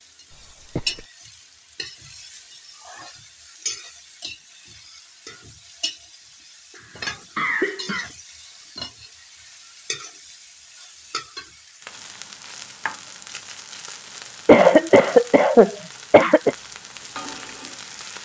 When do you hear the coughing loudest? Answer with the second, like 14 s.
15 s.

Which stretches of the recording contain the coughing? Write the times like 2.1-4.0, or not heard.
0.3-1.1, 6.8-8.1, 14.4-16.6.